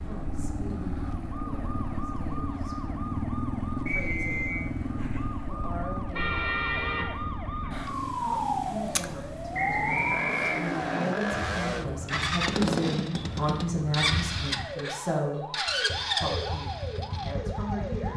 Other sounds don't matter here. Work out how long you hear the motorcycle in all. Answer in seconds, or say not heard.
18 s.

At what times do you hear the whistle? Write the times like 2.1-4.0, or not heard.
3.9-4.7, 9.5-11.1.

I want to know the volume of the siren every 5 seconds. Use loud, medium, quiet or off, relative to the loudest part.
medium, loud, medium, loud.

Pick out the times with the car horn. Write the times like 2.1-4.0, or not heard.
6.1-7.8.